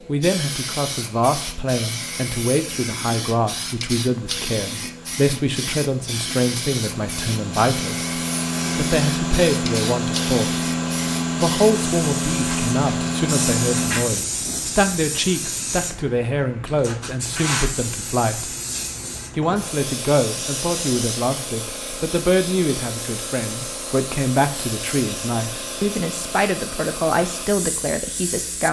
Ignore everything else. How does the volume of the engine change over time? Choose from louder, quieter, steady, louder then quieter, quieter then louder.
louder.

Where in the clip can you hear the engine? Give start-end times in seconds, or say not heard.
0.0-14.1.